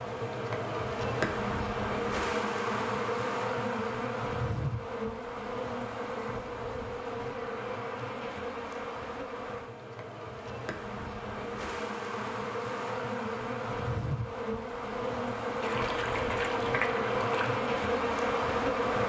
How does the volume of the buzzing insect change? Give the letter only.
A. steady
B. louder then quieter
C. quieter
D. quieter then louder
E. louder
D.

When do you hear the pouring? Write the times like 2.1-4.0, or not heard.
15.6-17.6.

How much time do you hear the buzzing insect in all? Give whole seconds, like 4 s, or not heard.
19 s.